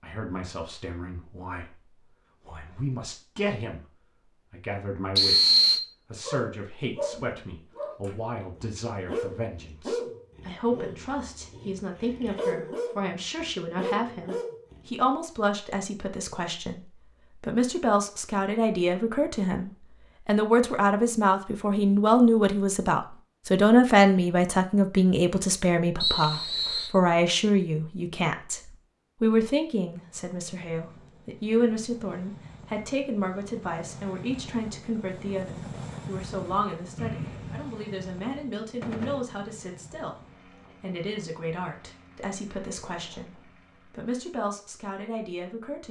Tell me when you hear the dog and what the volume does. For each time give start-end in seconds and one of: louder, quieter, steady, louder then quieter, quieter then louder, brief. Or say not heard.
6.2-14.8 steady.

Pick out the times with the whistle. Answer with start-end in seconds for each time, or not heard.
5.2-5.8, 26.0-26.9, 37.0-37.7.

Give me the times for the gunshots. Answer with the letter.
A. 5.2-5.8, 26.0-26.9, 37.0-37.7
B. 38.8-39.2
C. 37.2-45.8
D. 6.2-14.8
B.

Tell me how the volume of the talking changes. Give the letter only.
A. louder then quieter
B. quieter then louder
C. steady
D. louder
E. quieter
A.